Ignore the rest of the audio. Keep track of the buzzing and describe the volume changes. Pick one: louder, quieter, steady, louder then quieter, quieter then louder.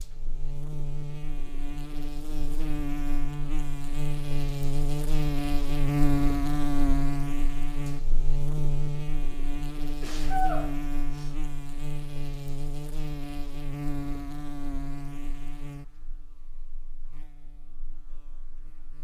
louder then quieter.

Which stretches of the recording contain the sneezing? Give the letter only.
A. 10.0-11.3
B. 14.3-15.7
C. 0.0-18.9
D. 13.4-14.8
A.